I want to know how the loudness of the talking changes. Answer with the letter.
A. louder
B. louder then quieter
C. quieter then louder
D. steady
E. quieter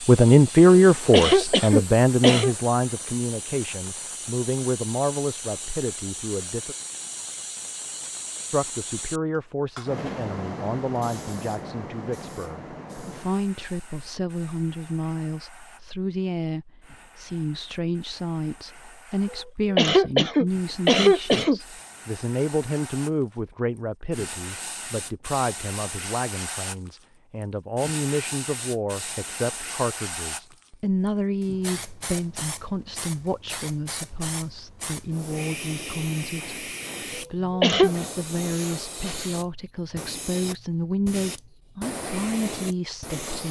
E.